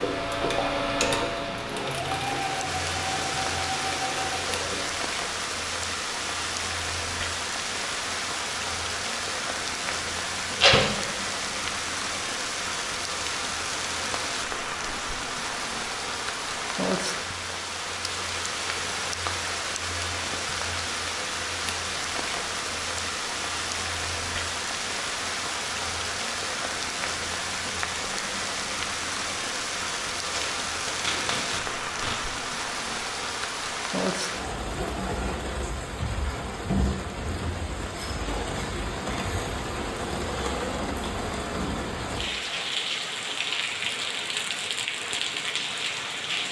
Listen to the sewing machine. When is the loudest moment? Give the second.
1 s.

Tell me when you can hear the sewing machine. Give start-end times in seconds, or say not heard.
0.0-5.0.